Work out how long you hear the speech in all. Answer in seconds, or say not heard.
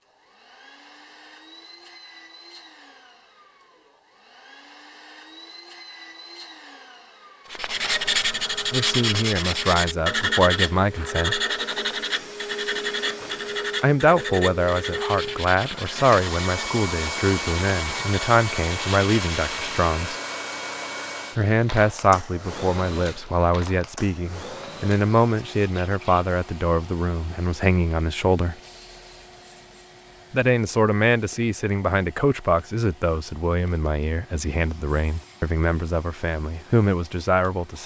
24 s.